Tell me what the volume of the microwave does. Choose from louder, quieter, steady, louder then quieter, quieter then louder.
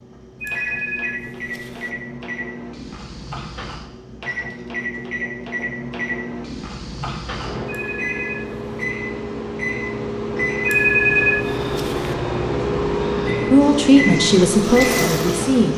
louder.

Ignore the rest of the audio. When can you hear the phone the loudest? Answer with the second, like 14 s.
11 s.